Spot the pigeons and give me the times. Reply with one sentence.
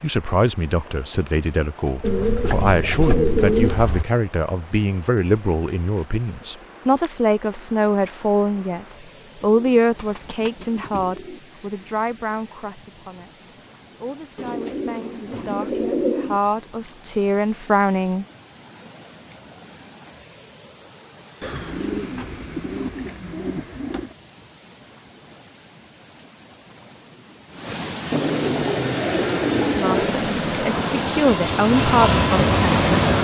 You can hear the pigeons from 2.0 to 4.0 s, from 9.4 to 11.4 s, from 14.3 to 16.4 s, from 21.4 to 24.1 s and from 28.1 to 30.1 s.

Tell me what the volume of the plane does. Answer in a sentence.
The loudness of the plane goes up.